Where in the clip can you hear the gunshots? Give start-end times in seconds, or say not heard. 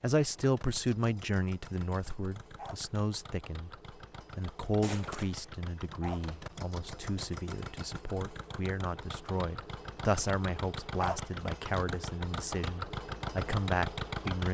4.8-5.5.